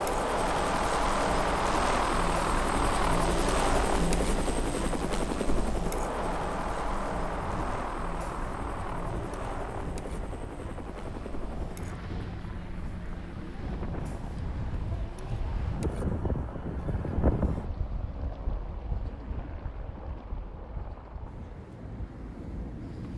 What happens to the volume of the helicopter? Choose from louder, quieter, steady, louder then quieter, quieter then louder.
quieter.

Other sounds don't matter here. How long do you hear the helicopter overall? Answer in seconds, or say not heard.
23 s.